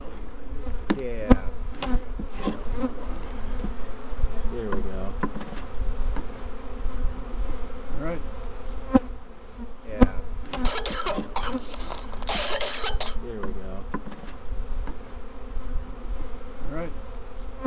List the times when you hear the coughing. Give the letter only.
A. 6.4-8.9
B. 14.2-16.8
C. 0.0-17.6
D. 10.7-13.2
D.